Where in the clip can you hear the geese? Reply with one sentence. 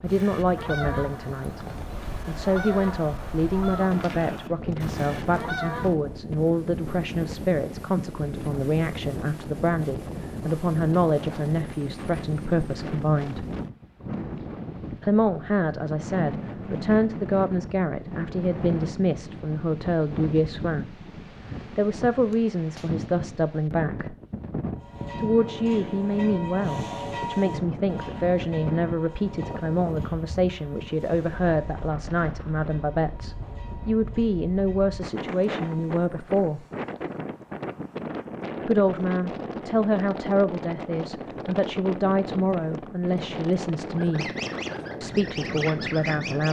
You can hear the geese from 0.0 to 6.0 s and from 44.0 to 46.4 s.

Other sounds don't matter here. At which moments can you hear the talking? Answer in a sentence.
The talking can be heard from 0.0 to 13.4 s, from 15.0 to 21.0 s, from 21.7 to 24.1 s, from 25.1 to 36.6 s, from 38.6 to 44.3 s and from 45.0 to 46.4 s.